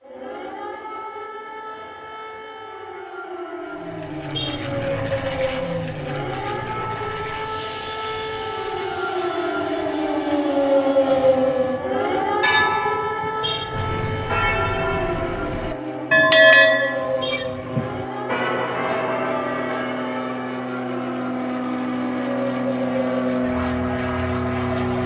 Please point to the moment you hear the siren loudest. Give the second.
11 s.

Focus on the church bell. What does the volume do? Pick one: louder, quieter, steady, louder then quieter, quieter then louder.
louder then quieter.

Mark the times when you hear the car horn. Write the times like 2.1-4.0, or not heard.
4.3-5.1, 13.4-14.3, 17.2-18.1.